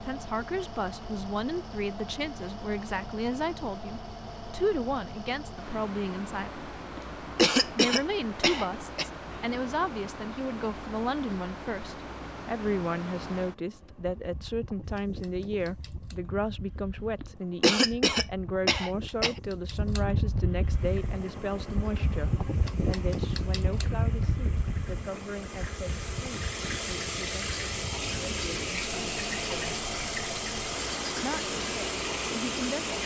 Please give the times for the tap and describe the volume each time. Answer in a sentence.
The tap can be heard from 20.6 to 33.0 s, getting louder.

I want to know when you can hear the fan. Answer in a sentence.
The fan can be heard from 0.0 to 33.0 s.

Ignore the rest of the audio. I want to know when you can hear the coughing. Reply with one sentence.
The coughing can be heard from 7.0 to 9.1 s and from 17.2 to 19.4 s.